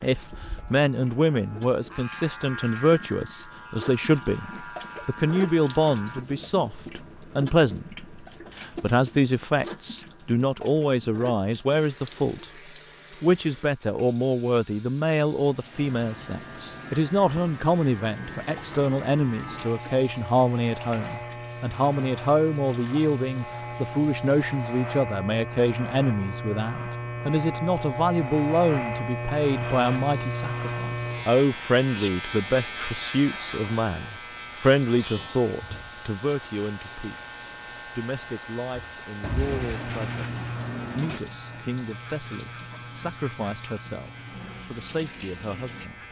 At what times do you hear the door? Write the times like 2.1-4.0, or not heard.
39.2-41.2.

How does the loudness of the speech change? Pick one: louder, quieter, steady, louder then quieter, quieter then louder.
quieter.